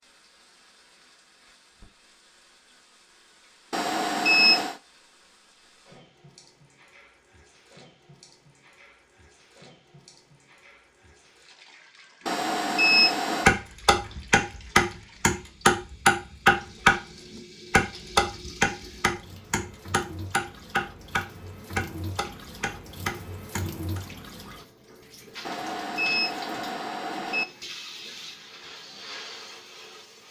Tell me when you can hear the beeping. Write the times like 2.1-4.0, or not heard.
3.7-4.8, 12.2-13.5, 25.4-27.4.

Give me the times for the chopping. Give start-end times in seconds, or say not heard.
13.4-24.0.